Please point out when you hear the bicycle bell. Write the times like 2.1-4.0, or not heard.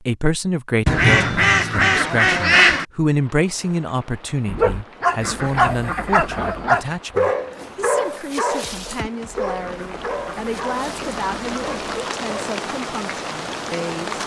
not heard.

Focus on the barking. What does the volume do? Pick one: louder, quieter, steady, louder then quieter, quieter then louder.
quieter.